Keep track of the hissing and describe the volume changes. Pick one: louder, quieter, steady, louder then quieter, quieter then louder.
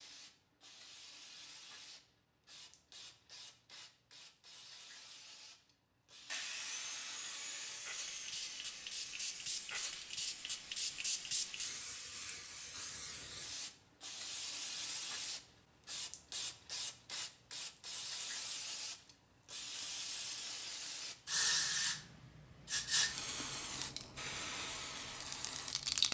louder.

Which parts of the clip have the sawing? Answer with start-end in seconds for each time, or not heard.
6.2-12.8.